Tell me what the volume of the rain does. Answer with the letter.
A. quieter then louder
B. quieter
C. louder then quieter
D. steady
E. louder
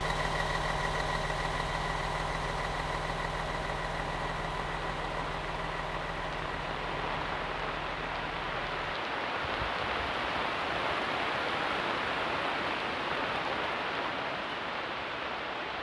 E.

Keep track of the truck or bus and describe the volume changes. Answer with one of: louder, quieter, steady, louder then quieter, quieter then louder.
quieter.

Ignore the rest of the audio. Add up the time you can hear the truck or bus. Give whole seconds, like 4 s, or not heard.
9 s.